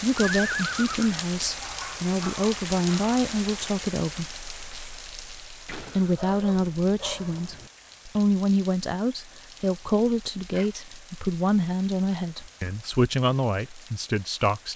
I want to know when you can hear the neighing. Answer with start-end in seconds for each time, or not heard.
0.1-1.1.